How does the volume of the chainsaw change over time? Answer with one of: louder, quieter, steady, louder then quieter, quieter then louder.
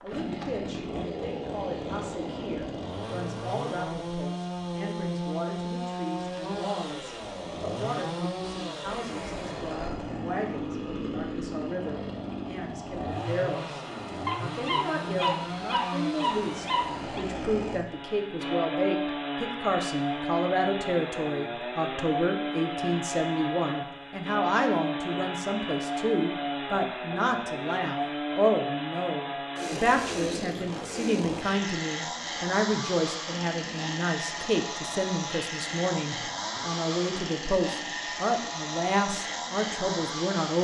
steady.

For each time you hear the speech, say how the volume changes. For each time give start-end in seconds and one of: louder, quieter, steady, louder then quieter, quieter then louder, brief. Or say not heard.
0.0-13.8 steady
14.4-40.6 steady.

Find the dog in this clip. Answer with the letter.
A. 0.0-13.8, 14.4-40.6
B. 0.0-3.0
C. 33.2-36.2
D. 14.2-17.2
D.